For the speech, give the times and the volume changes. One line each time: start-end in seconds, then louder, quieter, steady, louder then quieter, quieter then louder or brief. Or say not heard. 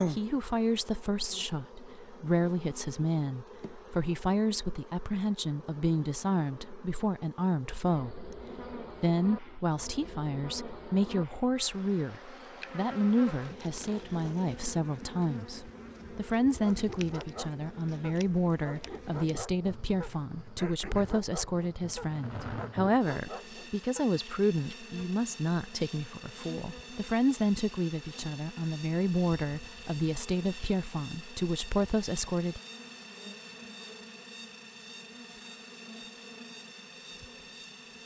0.1-32.6 steady.